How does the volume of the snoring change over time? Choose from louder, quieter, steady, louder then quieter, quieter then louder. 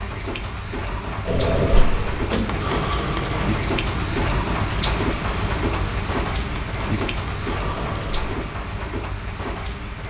quieter.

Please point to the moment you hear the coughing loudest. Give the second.
2 s.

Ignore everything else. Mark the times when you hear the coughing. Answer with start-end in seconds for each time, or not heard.
1.2-2.4, 7.8-8.3.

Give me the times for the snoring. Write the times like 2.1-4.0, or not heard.
2.4-8.7.